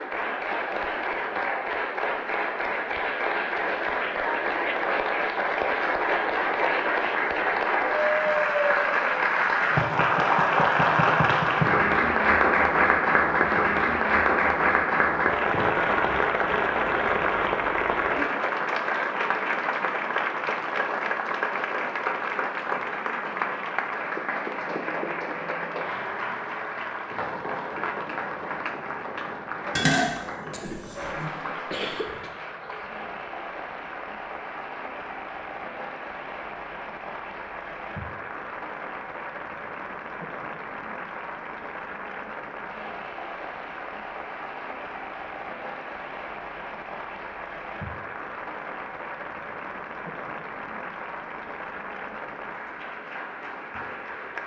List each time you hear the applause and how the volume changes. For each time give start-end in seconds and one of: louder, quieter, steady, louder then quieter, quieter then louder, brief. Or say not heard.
0.0-54.4 quieter.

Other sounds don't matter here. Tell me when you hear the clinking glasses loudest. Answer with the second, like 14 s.
30 s.